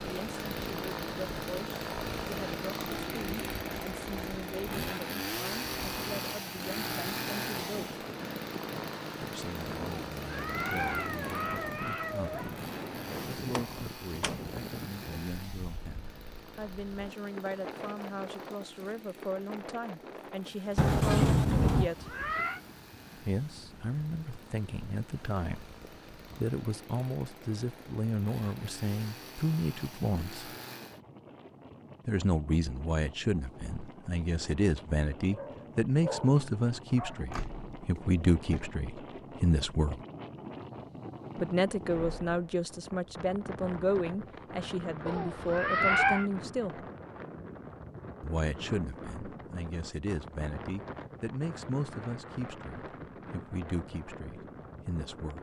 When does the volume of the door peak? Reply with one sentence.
The volume of the door peaks at 21 seconds.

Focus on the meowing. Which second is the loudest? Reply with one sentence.
The volume of the meowing peaks at 46 seconds.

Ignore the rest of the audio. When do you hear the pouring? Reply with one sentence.
You can't hear the pouring here.